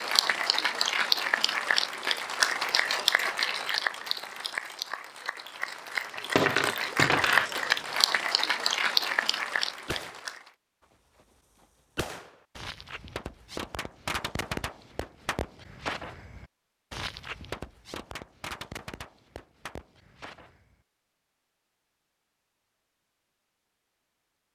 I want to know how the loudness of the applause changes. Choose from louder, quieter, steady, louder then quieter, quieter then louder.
quieter then louder.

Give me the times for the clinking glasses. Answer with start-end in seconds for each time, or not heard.
6.2-7.7.